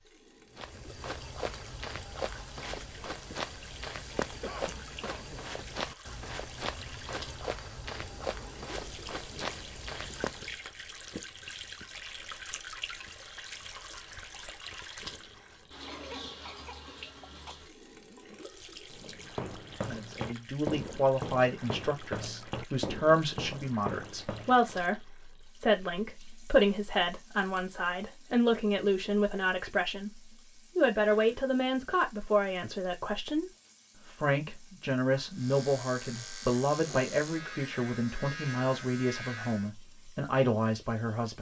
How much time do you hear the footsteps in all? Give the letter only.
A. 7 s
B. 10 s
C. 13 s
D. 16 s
D.